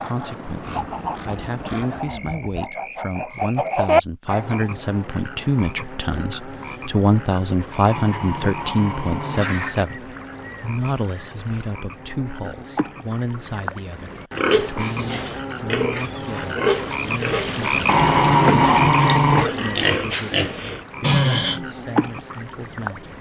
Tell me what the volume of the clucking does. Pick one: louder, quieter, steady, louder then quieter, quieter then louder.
quieter then louder.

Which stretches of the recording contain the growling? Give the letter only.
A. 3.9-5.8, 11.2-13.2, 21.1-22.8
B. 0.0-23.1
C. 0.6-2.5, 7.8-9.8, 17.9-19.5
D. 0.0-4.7
C.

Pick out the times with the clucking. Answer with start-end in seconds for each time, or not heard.
0.0-4.7.